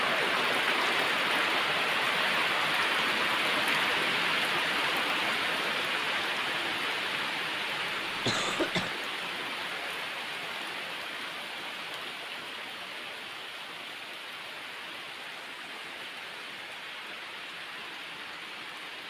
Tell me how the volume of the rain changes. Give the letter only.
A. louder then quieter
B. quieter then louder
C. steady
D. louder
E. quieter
E.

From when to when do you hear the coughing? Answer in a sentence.
The coughing can be heard from 8.2 to 8.9 s.